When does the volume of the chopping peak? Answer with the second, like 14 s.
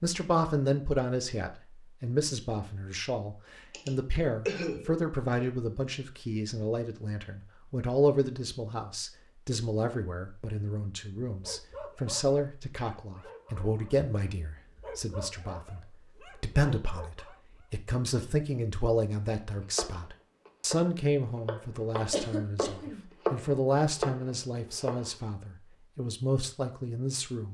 23 s.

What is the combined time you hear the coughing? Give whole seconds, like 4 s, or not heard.
3 s.